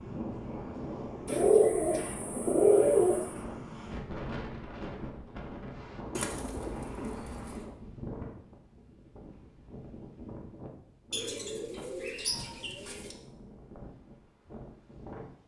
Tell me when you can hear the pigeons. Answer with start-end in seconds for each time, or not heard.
1.2-3.4, 6.2-7.7, 11.1-13.2.